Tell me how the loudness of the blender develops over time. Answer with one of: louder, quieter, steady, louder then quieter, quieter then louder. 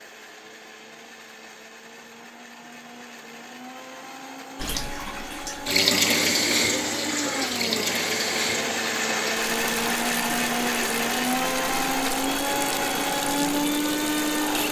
louder.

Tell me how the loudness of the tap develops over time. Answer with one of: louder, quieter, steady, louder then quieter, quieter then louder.
quieter.